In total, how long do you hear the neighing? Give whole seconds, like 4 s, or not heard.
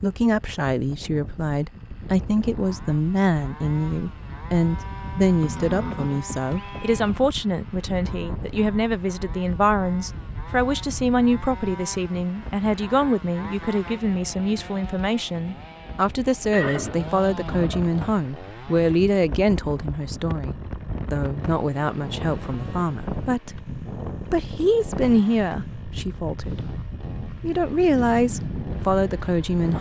3 s.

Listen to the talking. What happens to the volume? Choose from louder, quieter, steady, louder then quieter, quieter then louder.
steady.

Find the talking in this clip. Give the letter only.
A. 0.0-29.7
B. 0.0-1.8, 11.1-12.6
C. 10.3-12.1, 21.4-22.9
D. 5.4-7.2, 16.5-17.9
A.